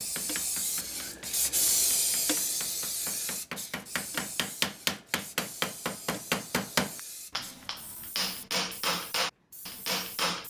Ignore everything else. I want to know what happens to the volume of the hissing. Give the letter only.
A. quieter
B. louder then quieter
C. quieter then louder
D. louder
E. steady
A.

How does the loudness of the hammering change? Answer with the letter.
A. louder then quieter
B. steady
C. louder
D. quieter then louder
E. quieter
C.